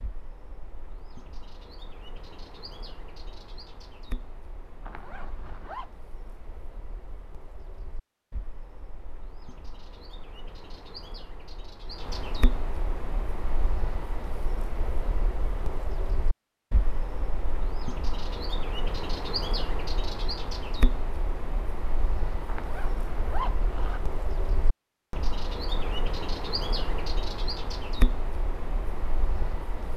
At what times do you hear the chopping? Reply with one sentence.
You can't hear the chopping here.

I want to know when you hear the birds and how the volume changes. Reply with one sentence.
You can hear the birds from 0.0 to 29.9 s, getting louder.